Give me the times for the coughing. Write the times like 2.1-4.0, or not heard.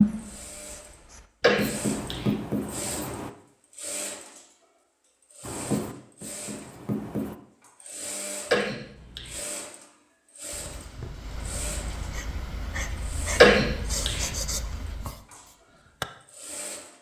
1.4-2.3, 8.5-9.4, 13.4-14.2.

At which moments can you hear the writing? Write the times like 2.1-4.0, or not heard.
0.0-3.3, 5.4-7.3, 10.5-16.1.